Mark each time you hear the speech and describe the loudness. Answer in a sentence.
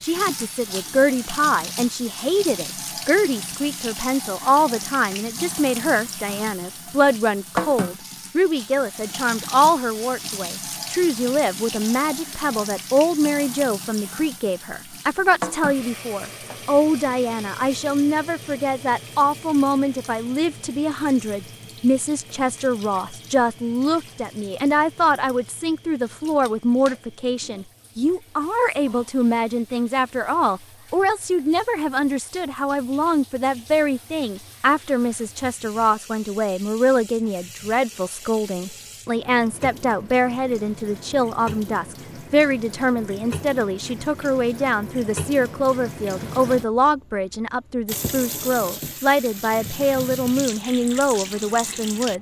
The speech can be heard from 0.0 to 52.1 s, at a steady volume.